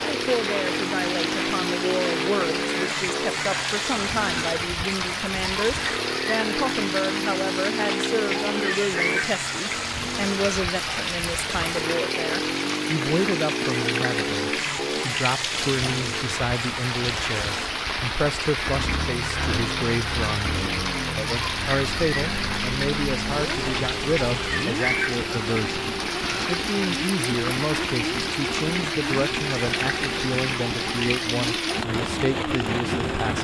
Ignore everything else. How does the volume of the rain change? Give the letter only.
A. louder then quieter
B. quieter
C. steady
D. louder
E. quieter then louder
C.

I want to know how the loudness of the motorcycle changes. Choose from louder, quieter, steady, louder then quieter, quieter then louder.
steady.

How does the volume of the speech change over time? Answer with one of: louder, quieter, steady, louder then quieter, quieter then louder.
steady.